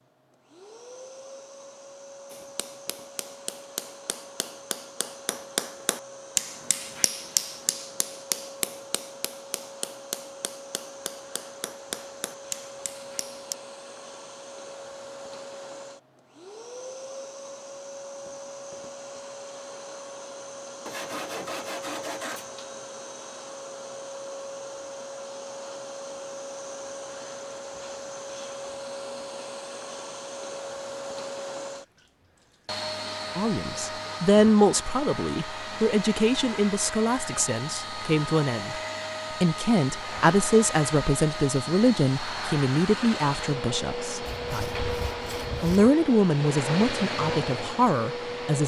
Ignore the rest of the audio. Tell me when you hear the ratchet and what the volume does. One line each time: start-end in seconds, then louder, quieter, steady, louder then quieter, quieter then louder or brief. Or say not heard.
not heard.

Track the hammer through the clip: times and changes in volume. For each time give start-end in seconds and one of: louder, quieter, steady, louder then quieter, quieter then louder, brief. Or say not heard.
2.3-13.6 louder then quieter.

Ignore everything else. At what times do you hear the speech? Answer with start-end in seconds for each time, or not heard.
33.4-38.8, 39.4-44.8, 45.6-48.6.